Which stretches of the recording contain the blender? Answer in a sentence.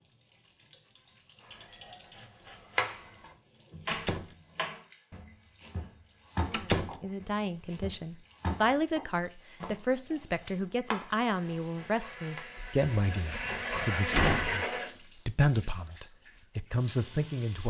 You can hear the blender from 11.5 to 14.9 s.